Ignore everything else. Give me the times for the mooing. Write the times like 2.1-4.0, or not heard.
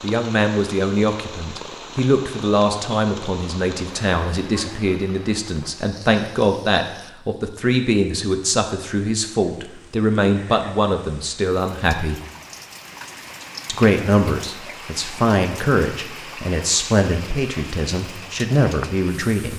not heard.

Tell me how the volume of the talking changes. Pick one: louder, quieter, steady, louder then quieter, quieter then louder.
steady.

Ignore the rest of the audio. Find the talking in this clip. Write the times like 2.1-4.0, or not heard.
0.0-12.2, 13.7-19.5.